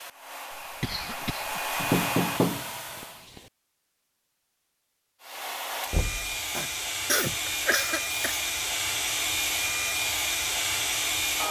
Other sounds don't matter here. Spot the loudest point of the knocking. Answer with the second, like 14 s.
2 s.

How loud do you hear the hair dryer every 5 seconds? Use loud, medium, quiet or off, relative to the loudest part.
medium, loud, loud.